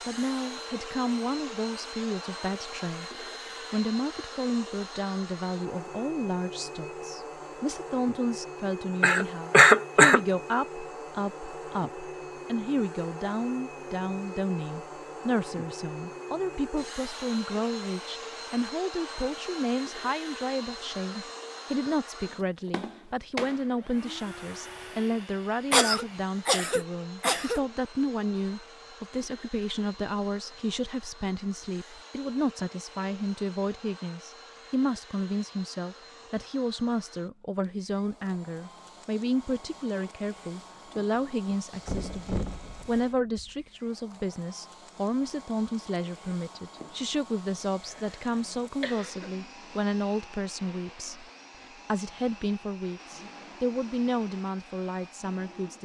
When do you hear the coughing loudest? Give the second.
10 s.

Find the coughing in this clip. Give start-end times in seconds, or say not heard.
9.0-10.2, 25.7-27.6, 47.9-49.3.